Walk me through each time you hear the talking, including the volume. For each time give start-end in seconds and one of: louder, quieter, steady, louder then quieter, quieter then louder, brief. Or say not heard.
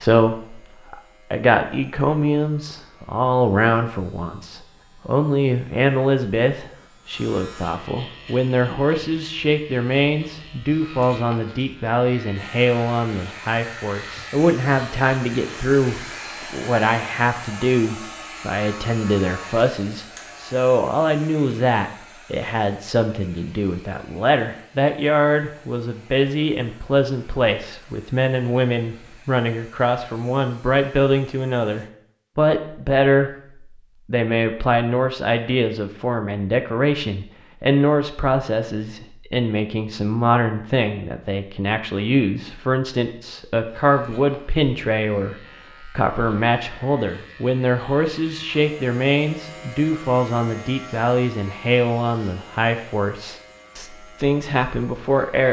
0.0-55.4 steady.